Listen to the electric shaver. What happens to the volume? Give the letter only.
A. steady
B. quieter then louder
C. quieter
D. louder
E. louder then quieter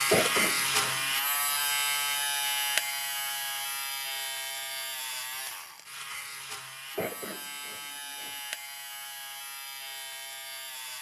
C.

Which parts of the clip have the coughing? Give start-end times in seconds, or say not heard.
0.1-0.9, 7.0-8.3.